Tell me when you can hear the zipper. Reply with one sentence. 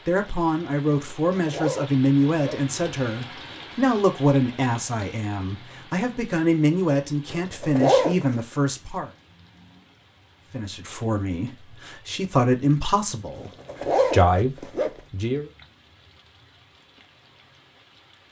You can hear the zipper from 1.0 to 2.7 s, from 7.3 to 8.3 s and from 13.3 to 15.0 s.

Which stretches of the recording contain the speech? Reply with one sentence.
The speech can be heard from 0.0 to 9.1 s and from 10.5 to 15.5 s.